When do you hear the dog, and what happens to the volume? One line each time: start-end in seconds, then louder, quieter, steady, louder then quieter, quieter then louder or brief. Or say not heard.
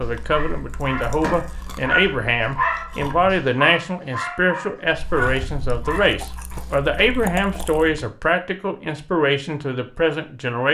0.0-6.7 louder then quieter.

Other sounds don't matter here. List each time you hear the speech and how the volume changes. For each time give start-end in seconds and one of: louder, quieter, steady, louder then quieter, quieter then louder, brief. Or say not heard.
0.0-10.6 steady.